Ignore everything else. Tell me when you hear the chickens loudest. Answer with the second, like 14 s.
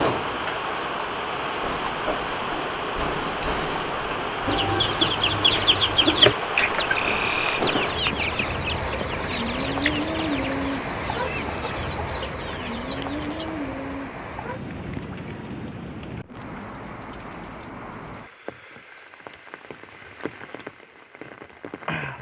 6 s.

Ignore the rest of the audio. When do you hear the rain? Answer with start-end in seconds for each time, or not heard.
0.0-22.1.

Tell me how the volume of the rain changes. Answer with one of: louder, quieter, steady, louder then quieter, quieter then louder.
quieter.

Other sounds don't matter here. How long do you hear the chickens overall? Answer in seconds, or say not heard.
9 s.